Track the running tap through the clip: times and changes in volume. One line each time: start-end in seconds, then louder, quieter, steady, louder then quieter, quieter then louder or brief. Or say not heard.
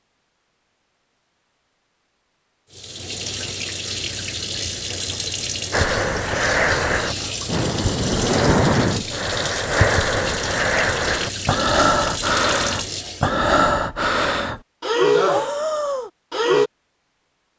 2.7-13.4 steady.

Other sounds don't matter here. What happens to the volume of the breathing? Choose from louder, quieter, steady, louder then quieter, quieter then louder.
steady.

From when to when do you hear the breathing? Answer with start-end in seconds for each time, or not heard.
5.7-16.7.